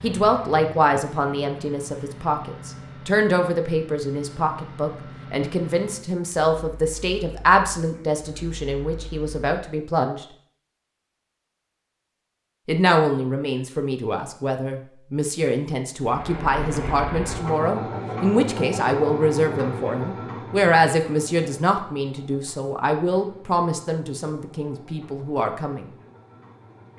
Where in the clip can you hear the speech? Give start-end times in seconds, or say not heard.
0.0-10.2, 12.7-25.9.